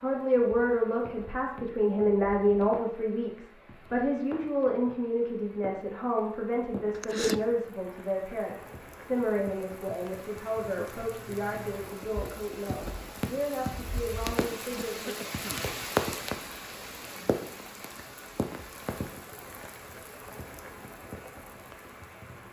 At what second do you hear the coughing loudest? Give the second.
7 s.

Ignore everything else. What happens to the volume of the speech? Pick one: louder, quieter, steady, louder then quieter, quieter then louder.
quieter.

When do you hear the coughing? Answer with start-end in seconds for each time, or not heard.
6.9-7.4, 14.8-15.7.